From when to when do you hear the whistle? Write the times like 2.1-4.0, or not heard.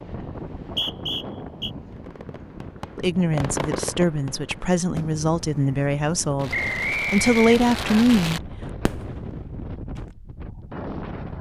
0.6-1.7, 6.5-8.1.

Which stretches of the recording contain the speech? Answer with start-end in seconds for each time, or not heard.
3.0-8.5.